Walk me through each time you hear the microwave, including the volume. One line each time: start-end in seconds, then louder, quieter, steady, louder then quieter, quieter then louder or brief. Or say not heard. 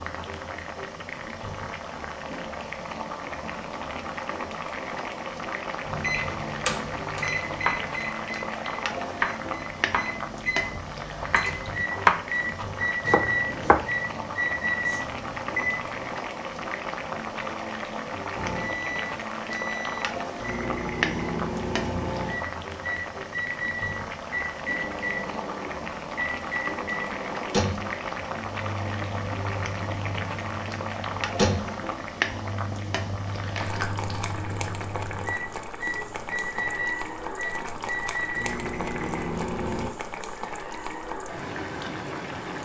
5.8-16.1 quieter then louder
18.3-40.0 steady.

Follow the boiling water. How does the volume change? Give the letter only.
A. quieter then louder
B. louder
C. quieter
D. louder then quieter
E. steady
E.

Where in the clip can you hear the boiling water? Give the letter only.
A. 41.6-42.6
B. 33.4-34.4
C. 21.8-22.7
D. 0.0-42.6
D.